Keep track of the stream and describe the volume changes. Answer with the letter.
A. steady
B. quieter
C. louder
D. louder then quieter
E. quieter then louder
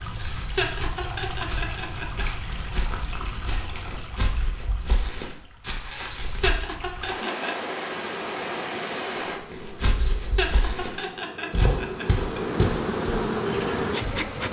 E.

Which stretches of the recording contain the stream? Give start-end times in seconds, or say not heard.
0.0-9.4.